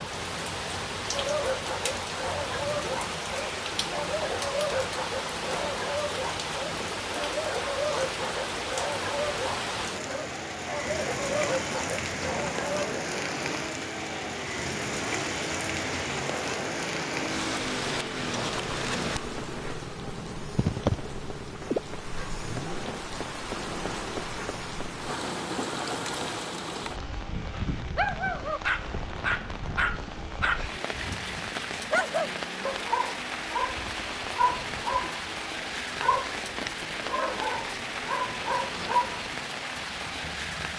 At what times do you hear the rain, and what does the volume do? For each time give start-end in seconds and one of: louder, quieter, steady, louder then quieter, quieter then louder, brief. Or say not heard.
0.0-40.7 steady.